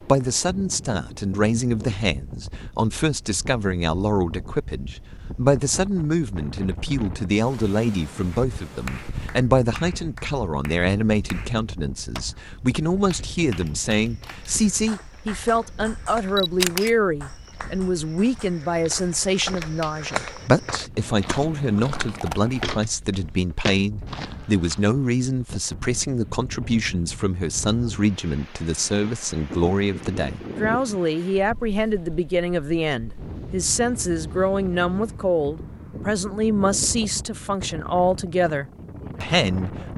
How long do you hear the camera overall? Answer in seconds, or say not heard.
2 s.